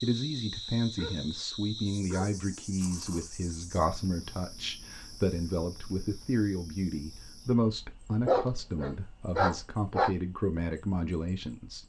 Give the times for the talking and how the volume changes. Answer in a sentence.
The talking can be heard from 0.0 to 11.8 s, at a steady volume.